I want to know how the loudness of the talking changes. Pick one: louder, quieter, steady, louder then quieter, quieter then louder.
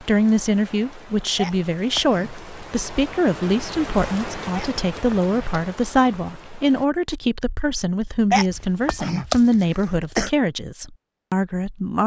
steady.